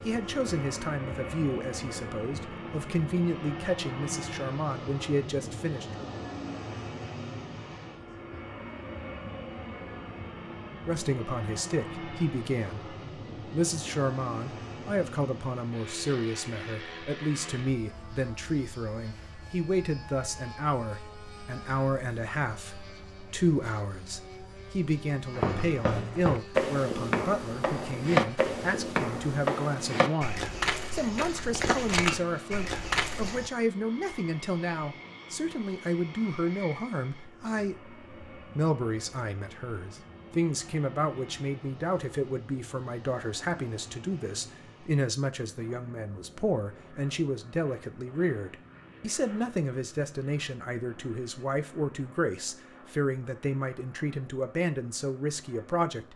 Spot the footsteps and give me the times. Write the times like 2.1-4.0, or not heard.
25.4-33.5.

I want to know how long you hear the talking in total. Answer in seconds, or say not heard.
51 s.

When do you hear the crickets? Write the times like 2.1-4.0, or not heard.
not heard.